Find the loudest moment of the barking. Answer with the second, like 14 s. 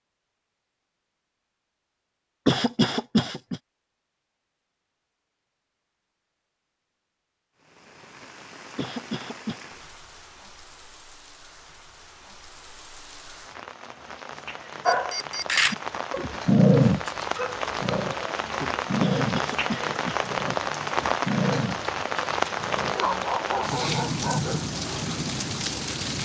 17 s.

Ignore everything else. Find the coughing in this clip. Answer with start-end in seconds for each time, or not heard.
2.5-3.6, 8.8-9.6, 19.0-20.3.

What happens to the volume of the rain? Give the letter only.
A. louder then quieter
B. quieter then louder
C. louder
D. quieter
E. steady
C.